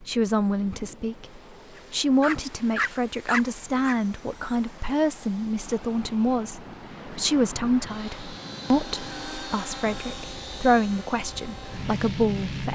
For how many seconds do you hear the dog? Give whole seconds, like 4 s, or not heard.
2 s.